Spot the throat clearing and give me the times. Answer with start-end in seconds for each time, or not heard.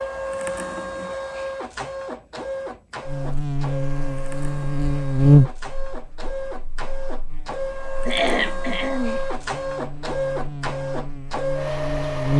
8.1-9.2.